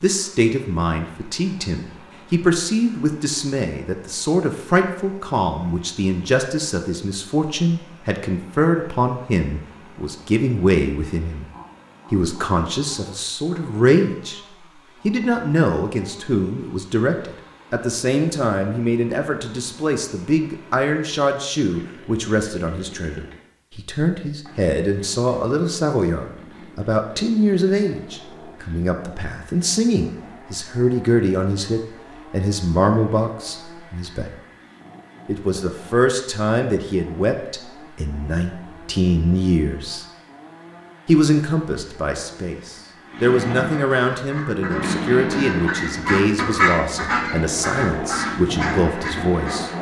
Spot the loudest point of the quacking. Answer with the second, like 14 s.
47 s.